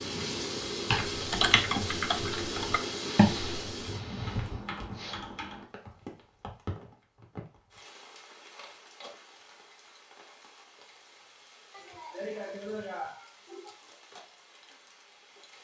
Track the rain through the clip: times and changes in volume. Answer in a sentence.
The rain can be heard from 0.0 to 15.5 s, getting quieter.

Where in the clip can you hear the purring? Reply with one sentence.
You can't hear the purring here.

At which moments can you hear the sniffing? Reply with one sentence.
The sniffing can be heard from 3.0 to 5.2 s and from 11.7 to 13.8 s.